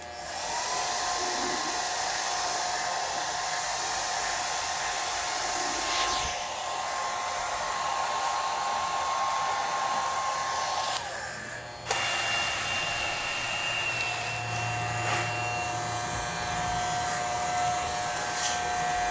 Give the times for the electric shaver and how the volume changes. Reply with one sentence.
You can hear the electric shaver from 0.0 to 19.0 s, getting louder.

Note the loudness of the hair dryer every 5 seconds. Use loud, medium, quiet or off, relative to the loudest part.
loud, loud, loud, medium.